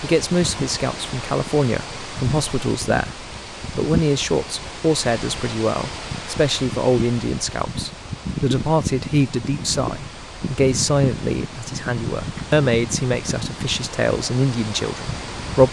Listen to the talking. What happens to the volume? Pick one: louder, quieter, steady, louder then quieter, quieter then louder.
steady.